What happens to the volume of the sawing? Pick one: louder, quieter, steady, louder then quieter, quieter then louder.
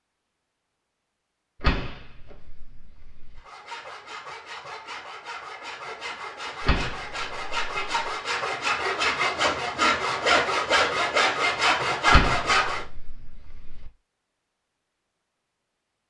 louder.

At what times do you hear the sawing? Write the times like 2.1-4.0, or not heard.
3.4-12.8.